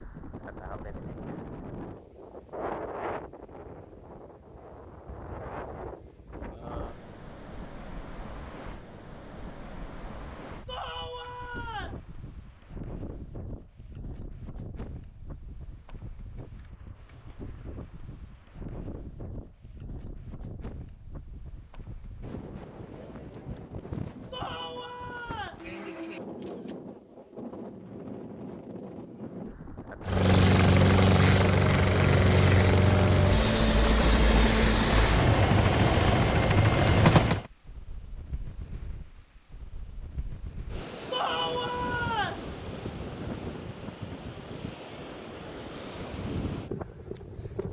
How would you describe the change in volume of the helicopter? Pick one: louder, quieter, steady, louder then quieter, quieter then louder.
steady.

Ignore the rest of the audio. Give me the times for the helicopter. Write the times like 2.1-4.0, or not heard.
30.0-37.5.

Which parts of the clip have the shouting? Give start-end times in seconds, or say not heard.
10.7-12.0, 24.3-25.6, 41.1-42.5.